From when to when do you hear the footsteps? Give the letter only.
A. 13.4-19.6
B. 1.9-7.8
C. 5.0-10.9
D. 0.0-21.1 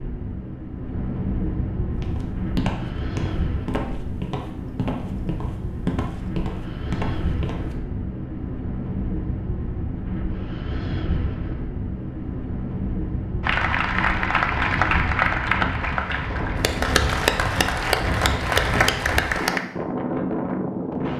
B.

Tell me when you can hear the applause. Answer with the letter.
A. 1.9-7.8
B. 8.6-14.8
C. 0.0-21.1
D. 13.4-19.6
D.